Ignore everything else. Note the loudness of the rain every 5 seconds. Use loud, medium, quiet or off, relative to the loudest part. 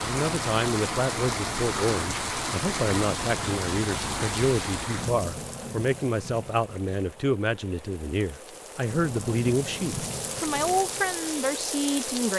loud, medium, loud.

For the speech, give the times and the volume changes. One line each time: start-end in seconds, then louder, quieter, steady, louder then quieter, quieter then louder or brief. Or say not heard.
0.0-12.3 steady.